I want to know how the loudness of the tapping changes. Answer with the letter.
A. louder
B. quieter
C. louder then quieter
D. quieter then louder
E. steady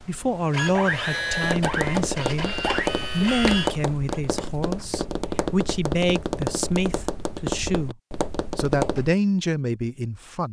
E.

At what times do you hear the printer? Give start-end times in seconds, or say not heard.
0.0-4.2.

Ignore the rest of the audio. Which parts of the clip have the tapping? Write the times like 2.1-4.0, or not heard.
1.4-9.2.